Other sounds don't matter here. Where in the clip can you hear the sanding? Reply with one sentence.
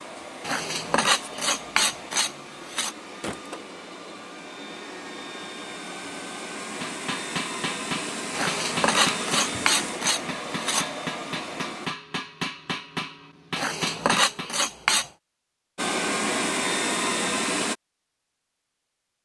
You can hear the sanding from 0.4 to 3.0 s, from 8.3 to 10.8 s and from 13.6 to 15.1 s.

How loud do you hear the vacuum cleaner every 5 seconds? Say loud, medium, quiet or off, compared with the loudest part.
quiet, medium, medium, loud.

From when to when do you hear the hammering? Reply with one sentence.
The hammering can be heard from 6.6 to 14.6 s.